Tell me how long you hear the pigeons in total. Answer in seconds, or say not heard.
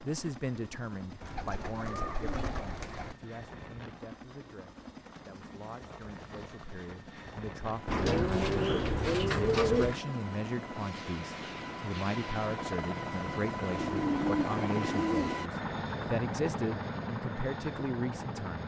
6 s.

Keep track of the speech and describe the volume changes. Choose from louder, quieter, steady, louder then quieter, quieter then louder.
quieter then louder.